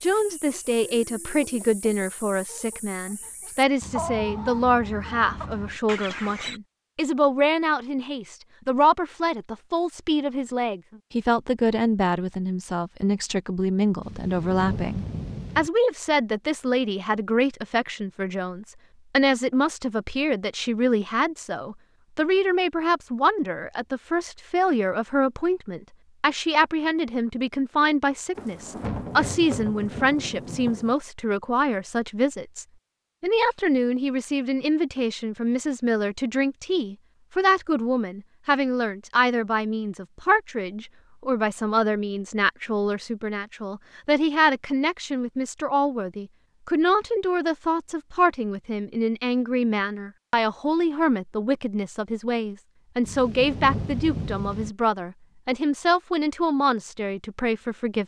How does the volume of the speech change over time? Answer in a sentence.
The volume of the speech stays about the same.